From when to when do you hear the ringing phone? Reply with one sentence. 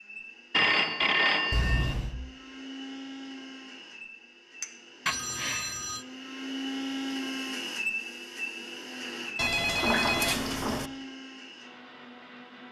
You can hear the ringing phone from 0.5 to 1.9 s, from 5.0 to 6.0 s and from 9.3 to 10.9 s.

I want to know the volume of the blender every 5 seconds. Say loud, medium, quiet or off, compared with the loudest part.
medium, loud, medium.